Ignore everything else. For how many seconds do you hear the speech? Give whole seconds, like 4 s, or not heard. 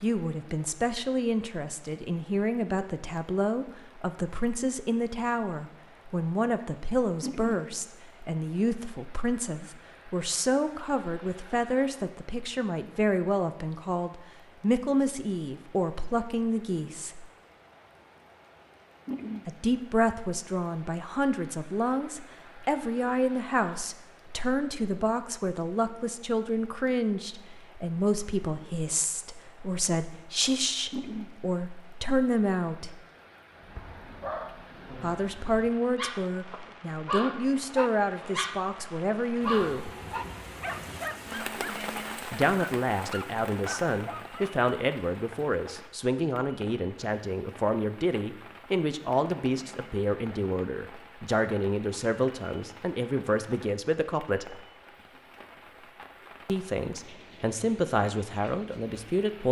51 s.